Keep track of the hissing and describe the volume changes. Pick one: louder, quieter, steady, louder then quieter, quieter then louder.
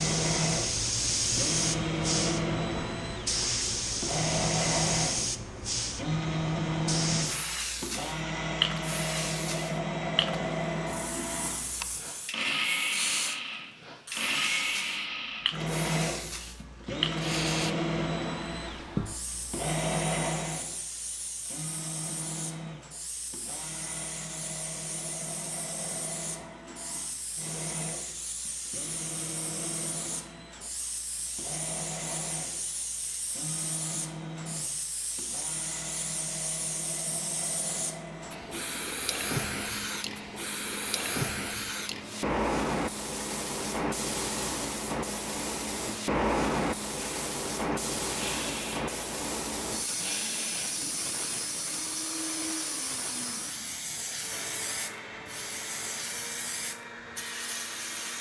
quieter then louder.